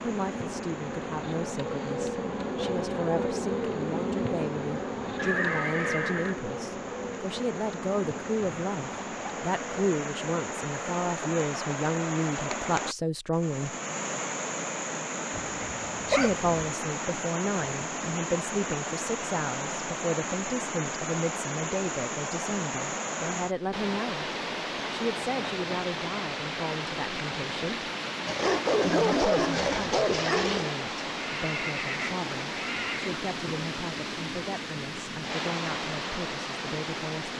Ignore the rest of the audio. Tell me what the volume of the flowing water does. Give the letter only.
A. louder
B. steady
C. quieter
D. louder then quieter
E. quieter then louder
A.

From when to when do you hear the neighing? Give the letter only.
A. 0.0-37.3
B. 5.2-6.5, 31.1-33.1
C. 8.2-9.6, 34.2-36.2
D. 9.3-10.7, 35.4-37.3
B.